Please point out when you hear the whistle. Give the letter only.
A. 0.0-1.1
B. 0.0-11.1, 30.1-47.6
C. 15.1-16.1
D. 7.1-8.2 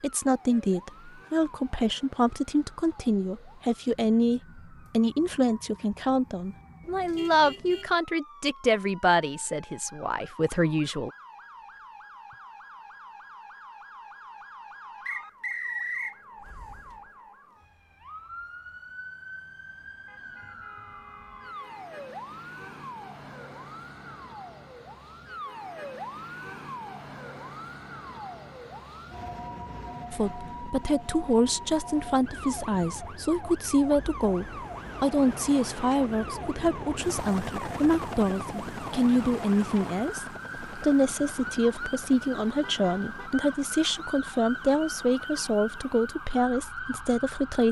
C.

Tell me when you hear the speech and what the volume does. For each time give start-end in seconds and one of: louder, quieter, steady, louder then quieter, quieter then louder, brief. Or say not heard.
0.0-11.1 steady
30.1-47.6 steady.